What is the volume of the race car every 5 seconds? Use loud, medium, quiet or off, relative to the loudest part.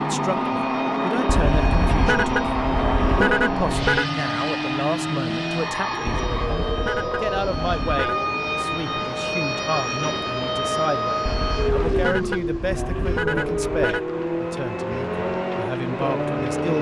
loud, medium, medium, loud.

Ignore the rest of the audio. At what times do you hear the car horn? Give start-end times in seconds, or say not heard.
1.2-4.0, 6.0-8.2, 11.2-14.0.